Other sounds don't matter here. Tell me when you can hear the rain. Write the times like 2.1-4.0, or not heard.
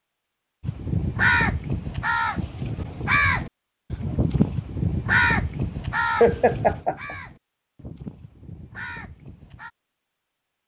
not heard.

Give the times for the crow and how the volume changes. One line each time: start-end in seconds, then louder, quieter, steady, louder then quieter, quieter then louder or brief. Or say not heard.
0.6-9.7 quieter.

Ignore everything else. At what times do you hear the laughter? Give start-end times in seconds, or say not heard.
6.2-7.2.